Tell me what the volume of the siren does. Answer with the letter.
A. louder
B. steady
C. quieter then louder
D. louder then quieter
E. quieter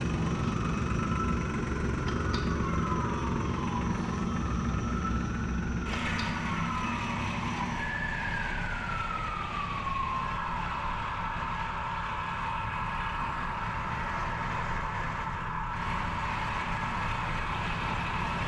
B.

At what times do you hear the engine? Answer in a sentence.
You can hear the engine from 0.0 to 18.4 s.